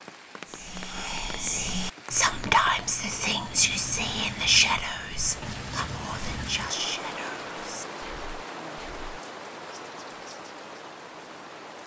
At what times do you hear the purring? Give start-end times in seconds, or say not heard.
not heard.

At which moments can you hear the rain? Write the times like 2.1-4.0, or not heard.
0.0-11.8.